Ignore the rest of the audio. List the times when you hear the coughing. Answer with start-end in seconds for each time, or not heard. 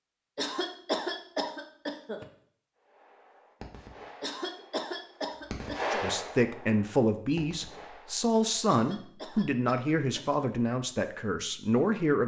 0.3-2.2, 4.2-6.1, 8.7-10.6.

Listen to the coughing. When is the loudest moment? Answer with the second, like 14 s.
1 s.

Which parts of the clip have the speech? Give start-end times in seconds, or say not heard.
5.9-12.2.